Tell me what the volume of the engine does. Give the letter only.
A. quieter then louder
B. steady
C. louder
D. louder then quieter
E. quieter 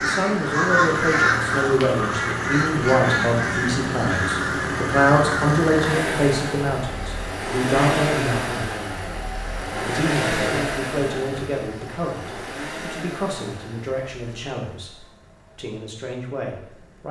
E.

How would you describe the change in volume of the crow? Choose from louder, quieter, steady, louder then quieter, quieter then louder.
quieter.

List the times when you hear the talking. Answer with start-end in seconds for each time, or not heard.
0.0-8.6, 9.8-17.0.